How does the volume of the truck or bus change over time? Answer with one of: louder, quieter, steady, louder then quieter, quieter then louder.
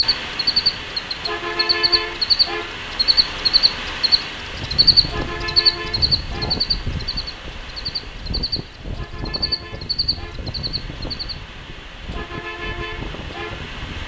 quieter then louder.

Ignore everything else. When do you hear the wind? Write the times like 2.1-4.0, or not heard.
4.3-14.0.